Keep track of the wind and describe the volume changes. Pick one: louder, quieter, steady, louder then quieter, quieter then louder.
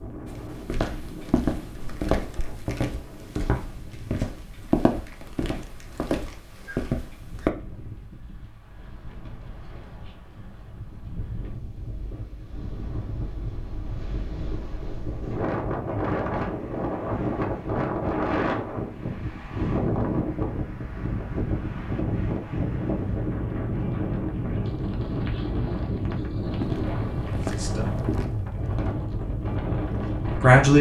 louder.